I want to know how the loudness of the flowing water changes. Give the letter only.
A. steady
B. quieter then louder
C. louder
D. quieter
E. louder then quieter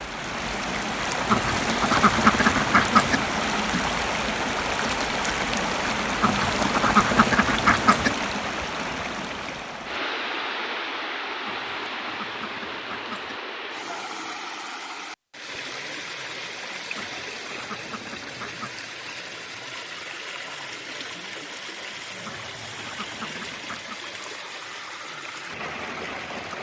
D.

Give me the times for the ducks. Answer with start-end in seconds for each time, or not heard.
1.2-3.2, 6.2-8.2, 11.4-13.4, 16.9-18.9, 22.2-24.0.